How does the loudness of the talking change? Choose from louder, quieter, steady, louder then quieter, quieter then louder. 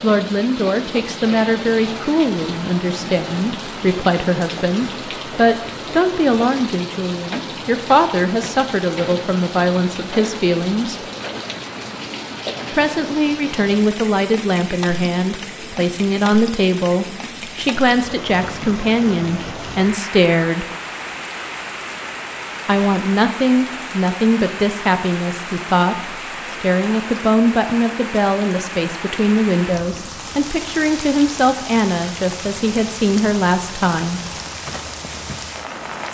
steady.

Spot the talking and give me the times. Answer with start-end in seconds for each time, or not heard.
0.0-10.9, 12.7-20.6, 22.6-34.2.